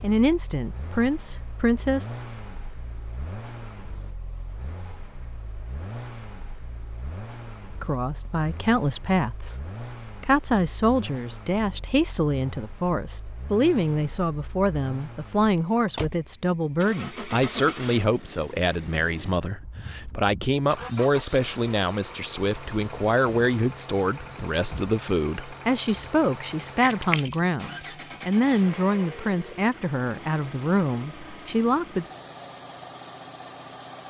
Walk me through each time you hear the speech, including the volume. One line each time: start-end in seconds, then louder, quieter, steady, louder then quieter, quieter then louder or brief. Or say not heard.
0.0-2.1 brief
7.8-32.0 steady.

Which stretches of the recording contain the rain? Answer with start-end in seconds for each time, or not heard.
not heard.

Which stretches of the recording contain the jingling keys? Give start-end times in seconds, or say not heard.
26.8-28.3.